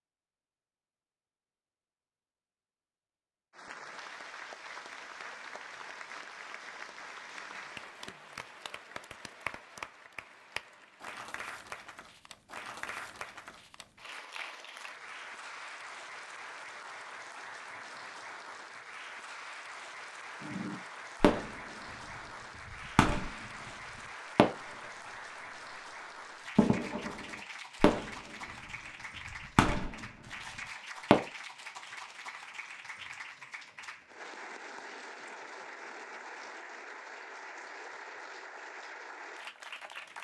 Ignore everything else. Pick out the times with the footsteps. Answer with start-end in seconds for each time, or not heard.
not heard.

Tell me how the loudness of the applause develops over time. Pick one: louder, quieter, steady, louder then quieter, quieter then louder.
steady.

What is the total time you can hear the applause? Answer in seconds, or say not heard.
37 s.